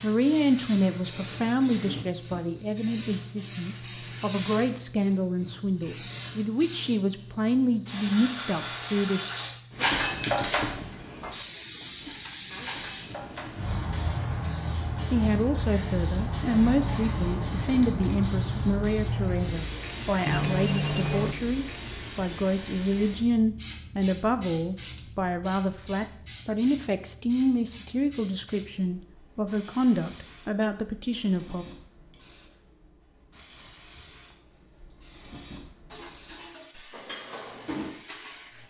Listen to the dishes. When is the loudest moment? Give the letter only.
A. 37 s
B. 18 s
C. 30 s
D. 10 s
D.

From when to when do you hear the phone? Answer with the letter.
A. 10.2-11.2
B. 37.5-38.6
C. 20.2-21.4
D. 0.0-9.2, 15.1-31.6
C.